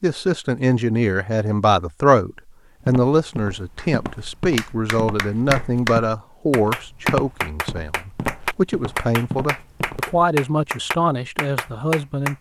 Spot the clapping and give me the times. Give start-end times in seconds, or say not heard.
3.8-12.3.